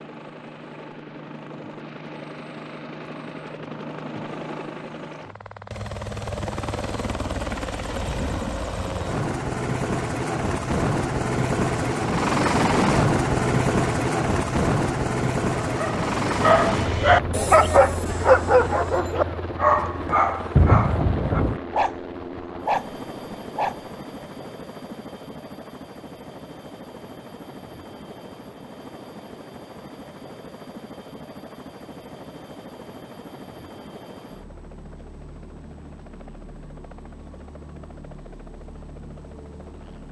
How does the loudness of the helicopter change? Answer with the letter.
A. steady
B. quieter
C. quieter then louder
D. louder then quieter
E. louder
D.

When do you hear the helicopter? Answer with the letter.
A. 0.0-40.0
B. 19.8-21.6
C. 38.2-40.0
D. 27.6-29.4
A.